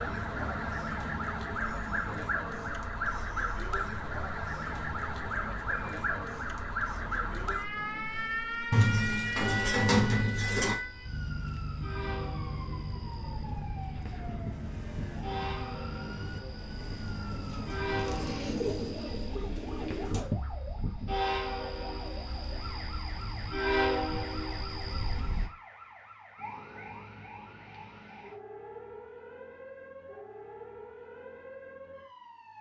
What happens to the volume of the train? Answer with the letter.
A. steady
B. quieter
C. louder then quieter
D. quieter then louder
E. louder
E.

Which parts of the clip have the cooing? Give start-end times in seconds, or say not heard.
8.7-10.8, 17.3-20.2.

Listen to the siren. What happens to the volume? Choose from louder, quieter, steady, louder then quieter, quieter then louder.
quieter.